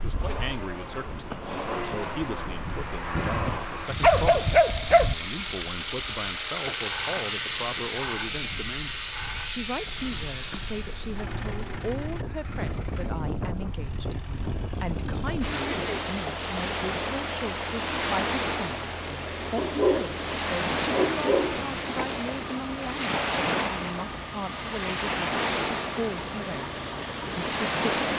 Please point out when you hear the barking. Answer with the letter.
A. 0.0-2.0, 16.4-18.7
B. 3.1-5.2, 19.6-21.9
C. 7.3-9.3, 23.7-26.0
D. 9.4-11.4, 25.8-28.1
B.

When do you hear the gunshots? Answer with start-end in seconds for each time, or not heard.
not heard.